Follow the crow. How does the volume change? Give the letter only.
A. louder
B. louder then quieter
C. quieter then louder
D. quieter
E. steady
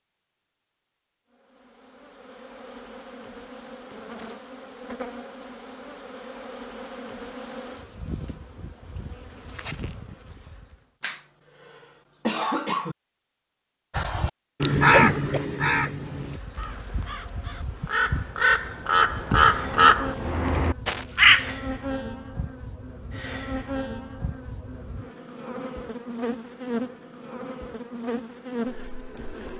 C.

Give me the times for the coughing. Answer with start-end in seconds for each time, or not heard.
11.0-12.9, 14.9-15.4.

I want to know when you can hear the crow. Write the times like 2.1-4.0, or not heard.
13.9-21.5.